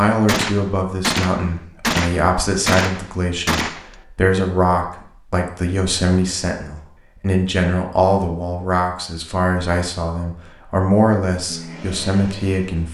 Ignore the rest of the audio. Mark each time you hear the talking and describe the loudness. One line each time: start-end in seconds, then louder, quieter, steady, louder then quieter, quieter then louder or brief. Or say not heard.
0.0-12.9 steady.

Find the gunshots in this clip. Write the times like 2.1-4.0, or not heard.
0.2-4.0.